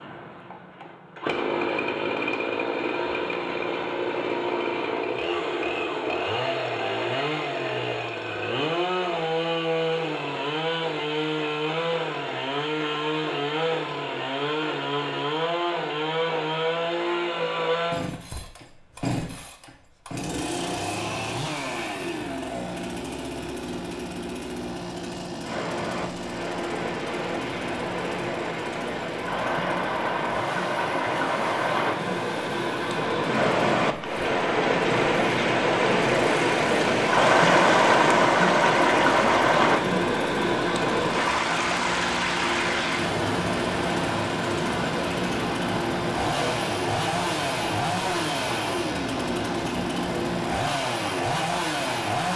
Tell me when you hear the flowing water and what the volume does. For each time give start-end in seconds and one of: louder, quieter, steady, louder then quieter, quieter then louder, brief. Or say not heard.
25.4-52.3 louder then quieter.